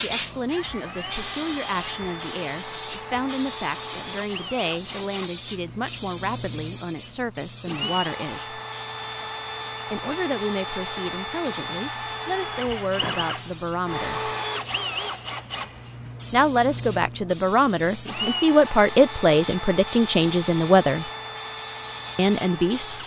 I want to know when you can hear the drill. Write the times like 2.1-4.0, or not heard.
0.0-23.0.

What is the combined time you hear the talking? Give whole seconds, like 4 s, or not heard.
19 s.